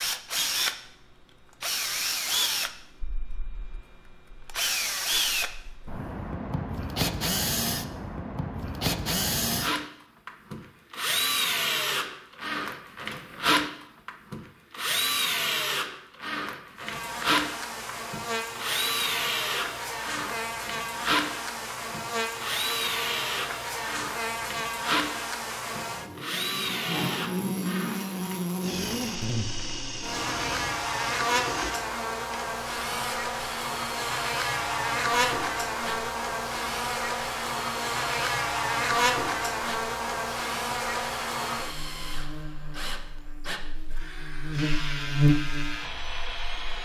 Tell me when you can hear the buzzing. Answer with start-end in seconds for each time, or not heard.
16.8-46.8.